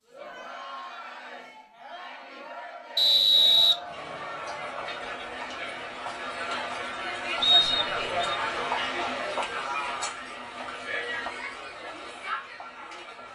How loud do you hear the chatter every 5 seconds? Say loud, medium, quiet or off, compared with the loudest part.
medium, loud, medium.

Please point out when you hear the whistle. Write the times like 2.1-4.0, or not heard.
3.0-3.8, 7.4-8.3.